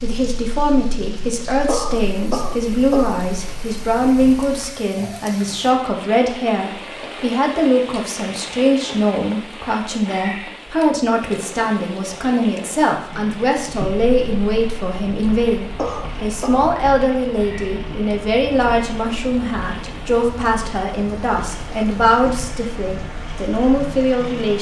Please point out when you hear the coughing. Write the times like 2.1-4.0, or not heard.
1.6-3.2, 15.8-16.7.